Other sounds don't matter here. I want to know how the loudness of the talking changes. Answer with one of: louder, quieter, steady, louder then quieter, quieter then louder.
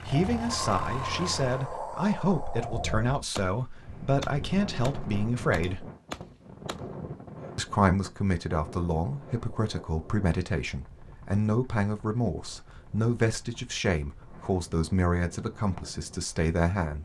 steady.